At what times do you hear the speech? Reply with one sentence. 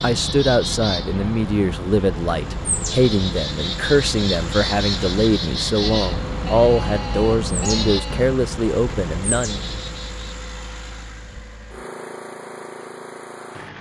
The speech can be heard from 0.0 to 9.6 s.